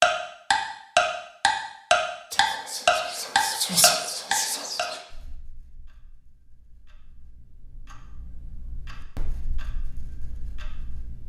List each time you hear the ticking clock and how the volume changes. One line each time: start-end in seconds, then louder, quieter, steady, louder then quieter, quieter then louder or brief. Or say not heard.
0.0-11.2 quieter then louder.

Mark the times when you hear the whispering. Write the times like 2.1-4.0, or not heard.
2.3-5.0.